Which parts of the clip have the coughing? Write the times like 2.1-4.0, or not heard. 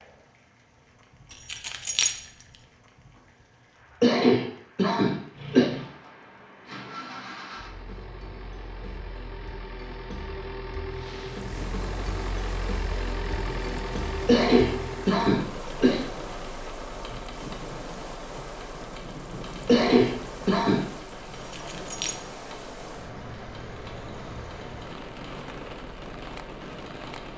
4.0-5.7, 14.2-16.1, 19.6-20.8.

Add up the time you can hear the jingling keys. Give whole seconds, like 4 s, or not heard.
2 s.